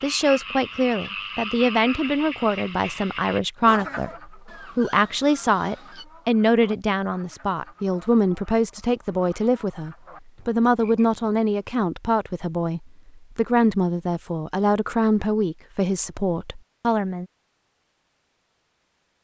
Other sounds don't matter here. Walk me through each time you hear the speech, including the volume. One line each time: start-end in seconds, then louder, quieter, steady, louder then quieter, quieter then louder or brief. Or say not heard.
0.0-17.2 steady.